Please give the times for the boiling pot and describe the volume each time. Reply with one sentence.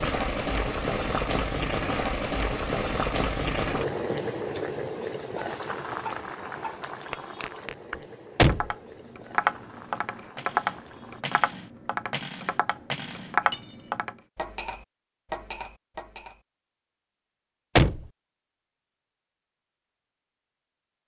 You can hear the boiling pot from 0.0 to 11.2 s, getting quieter.